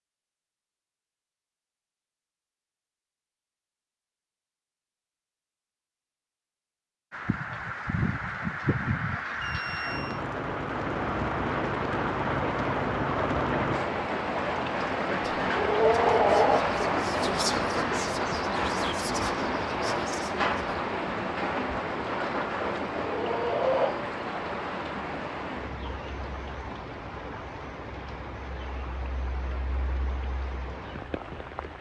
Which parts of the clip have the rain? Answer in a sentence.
The rain can be heard from 7.1 to 31.7 s.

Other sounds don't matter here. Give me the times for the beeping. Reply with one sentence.
You can hear the beeping from 9.4 to 10.2 s.